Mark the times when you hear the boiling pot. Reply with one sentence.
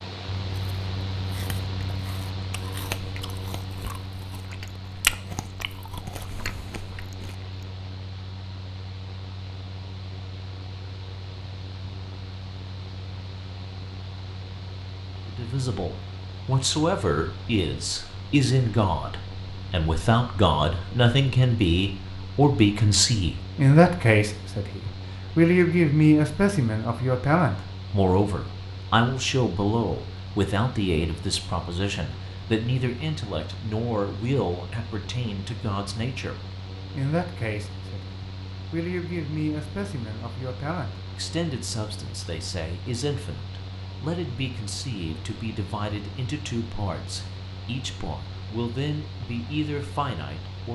You can't hear the boiling pot here.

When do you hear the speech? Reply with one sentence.
You can hear the speech from 15.2 to 50.7 s.